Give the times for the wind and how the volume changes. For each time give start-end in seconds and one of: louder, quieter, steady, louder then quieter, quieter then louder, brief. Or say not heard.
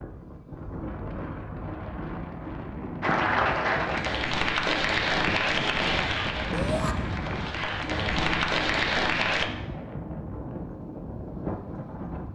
0.0-12.3 steady.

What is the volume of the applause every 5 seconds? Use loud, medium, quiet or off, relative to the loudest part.
loud, loud, off.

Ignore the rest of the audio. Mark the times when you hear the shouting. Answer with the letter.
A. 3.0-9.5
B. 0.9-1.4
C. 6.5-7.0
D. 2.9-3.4
C.